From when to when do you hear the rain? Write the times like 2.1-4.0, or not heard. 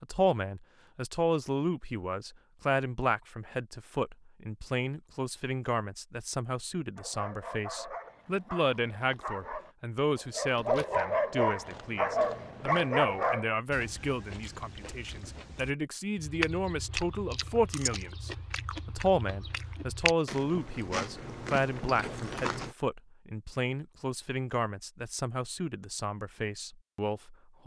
not heard.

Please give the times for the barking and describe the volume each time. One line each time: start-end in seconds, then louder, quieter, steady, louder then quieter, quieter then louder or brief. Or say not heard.
7.0-13.5 louder.